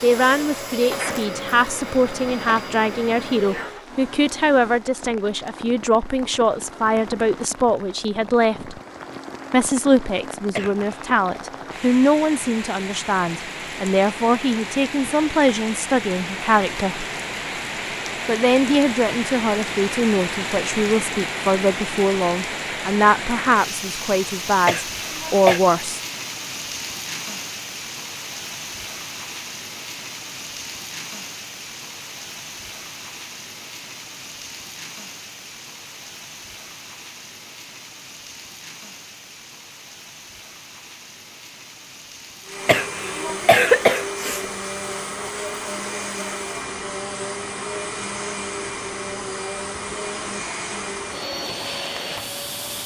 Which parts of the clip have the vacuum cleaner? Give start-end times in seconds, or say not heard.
0.0-3.9, 42.4-52.8.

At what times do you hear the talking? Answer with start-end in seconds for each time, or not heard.
0.0-8.8, 9.5-17.1, 18.2-26.0.